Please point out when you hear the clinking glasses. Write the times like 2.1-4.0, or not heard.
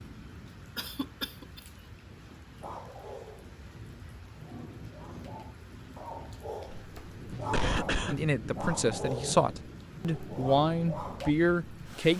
not heard.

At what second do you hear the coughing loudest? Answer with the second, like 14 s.
8 s.